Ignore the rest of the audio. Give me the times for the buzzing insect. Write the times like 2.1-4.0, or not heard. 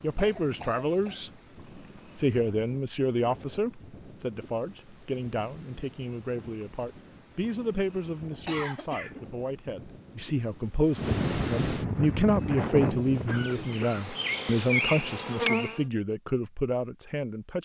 11.9-15.8.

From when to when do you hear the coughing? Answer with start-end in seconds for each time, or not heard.
0.1-2.0, 8.4-9.2, 13.2-14.1.